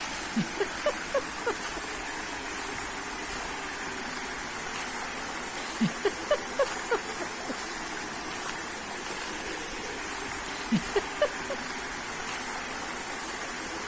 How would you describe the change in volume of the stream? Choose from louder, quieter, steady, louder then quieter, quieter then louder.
steady.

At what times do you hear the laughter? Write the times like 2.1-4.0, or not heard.
0.2-1.8, 5.5-7.5, 10.4-11.6.